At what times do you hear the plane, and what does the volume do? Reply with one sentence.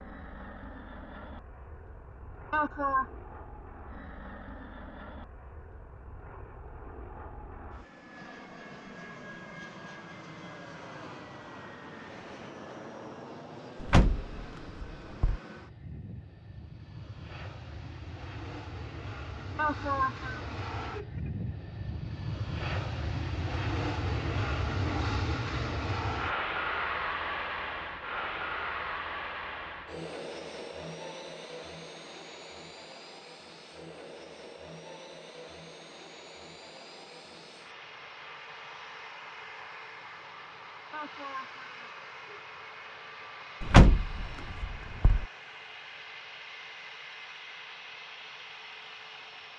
You can hear the plane from 0.0 to 49.5 s, getting louder then quieter.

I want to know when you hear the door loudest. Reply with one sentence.
The loudest moment of the door is at 44 seconds.